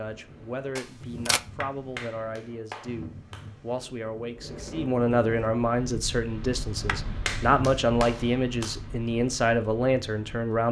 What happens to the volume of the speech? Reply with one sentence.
The volume of the speech goes up.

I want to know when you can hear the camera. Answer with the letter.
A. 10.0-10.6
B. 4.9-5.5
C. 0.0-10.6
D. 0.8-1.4
D.